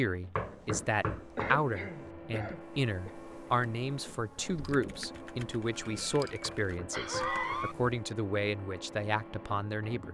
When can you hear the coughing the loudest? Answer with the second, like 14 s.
7 s.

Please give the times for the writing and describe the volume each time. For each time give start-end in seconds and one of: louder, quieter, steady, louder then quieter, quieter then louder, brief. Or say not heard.
not heard.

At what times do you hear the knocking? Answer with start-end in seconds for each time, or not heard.
0.3-2.0, 6.5-7.7.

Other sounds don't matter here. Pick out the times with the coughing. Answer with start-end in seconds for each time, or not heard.
1.4-3.1, 5.7-7.8.